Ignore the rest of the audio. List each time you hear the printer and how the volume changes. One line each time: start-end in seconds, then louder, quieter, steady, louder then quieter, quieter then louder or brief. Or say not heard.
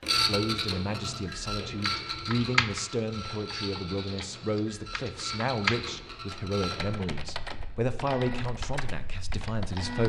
0.0-10.0 quieter.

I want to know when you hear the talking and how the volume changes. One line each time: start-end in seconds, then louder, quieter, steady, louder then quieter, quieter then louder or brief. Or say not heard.
0.2-10.0 steady.